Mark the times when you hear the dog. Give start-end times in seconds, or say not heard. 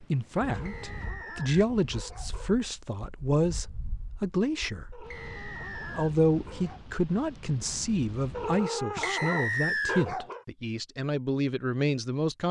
0.5-2.5, 4.9-6.8, 8.3-10.4.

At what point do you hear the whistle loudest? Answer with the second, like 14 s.
10 s.